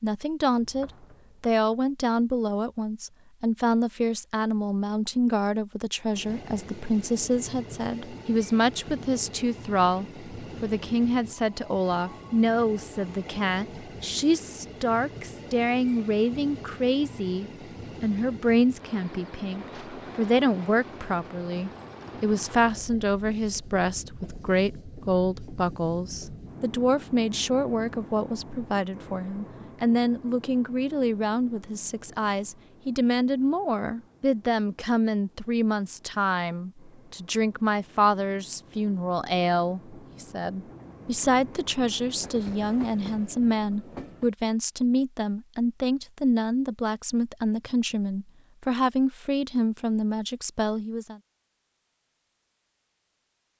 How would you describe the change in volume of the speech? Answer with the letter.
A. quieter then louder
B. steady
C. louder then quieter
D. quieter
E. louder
B.